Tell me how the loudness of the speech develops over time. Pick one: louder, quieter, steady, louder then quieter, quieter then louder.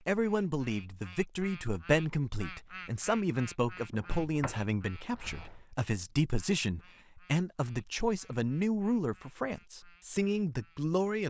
steady.